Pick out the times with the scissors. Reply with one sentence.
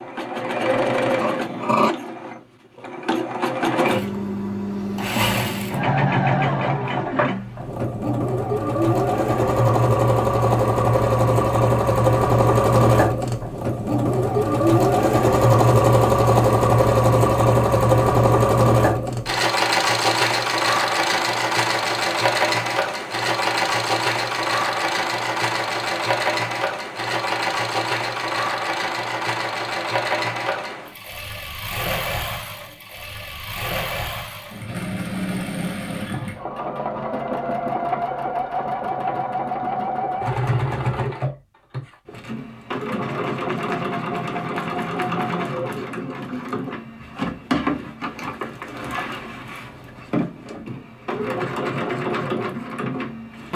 You can hear the scissors from 1.2 to 1.9 s.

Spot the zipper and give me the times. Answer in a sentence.
You can't hear the zipper here.